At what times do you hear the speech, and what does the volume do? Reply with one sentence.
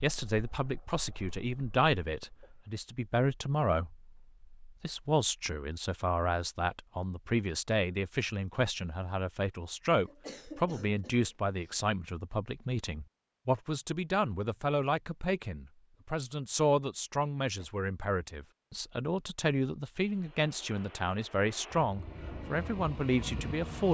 The speech can be heard from 0.0 to 23.8 s, at a steady volume.